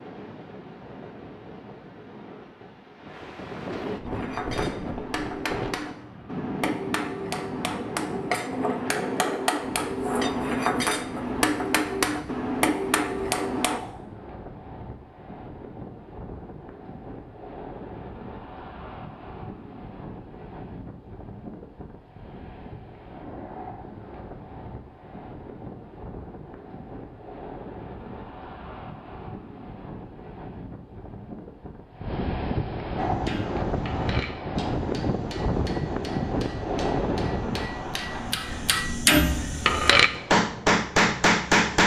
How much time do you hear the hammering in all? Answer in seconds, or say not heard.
19 s.